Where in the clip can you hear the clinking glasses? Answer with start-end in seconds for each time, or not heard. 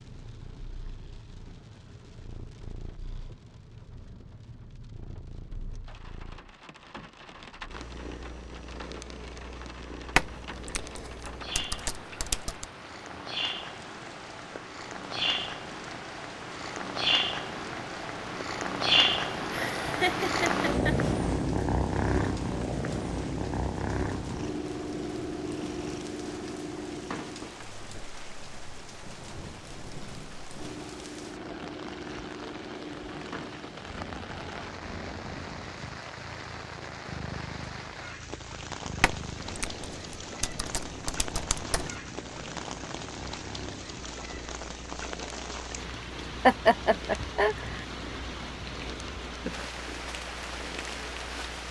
not heard.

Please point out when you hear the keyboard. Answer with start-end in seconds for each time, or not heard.
10.2-12.7, 39.0-42.0.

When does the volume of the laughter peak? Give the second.
47 s.